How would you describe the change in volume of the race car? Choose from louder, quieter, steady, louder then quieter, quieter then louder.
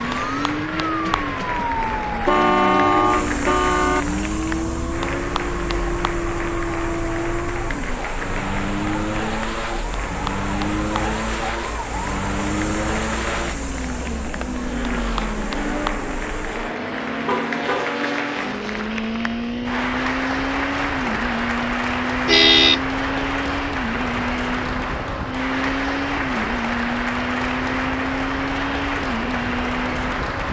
steady.